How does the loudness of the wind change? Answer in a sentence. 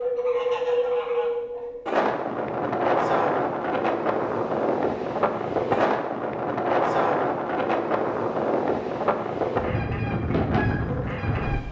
The volume of the wind stays about the same.